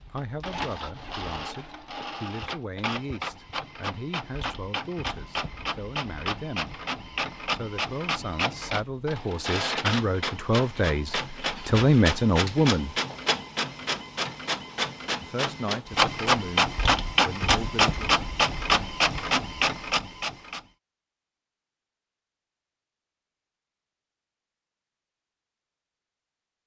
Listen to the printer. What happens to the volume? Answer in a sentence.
The volume of the printer goes up.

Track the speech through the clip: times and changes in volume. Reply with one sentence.
You can hear the speech from 0.0 to 6.8 s, at a steady volume; from 7.5 to 12.9 s, getting louder; and briefly from 15.2 to 18.0 s.